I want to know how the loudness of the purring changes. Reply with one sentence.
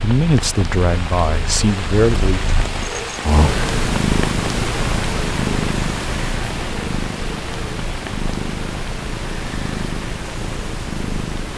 The loudness of the purring goes up, then down.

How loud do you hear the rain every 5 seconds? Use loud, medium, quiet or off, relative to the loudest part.
loud, loud, medium.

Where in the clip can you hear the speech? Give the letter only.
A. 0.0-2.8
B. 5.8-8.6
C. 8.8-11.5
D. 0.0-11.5
A.